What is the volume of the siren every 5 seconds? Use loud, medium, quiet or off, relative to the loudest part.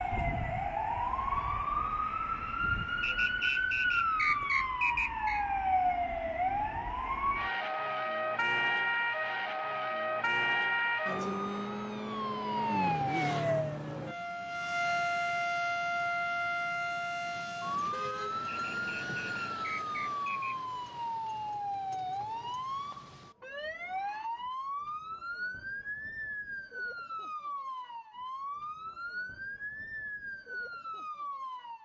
loud, loud, loud, loud, medium, medium, medium.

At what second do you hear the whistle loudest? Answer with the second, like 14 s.
4 s.